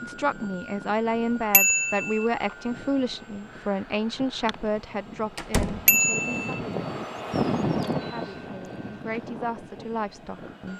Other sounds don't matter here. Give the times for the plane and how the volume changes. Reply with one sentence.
The plane can be heard from 0.0 to 10.7 s, getting louder then quieter.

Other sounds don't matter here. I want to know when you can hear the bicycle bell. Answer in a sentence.
You can hear the bicycle bell from 1.5 to 2.2 s and from 5.8 to 6.6 s.